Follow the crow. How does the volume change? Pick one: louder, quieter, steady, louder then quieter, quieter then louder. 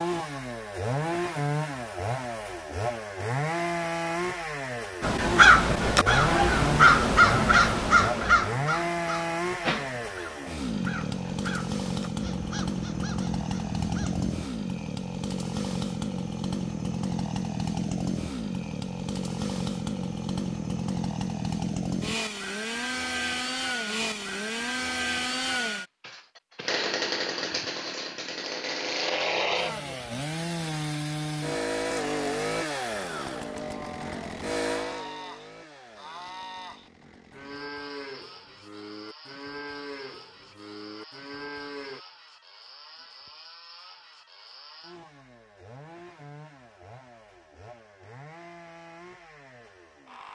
quieter.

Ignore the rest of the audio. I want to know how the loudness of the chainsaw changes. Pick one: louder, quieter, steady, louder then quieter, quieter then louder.
quieter.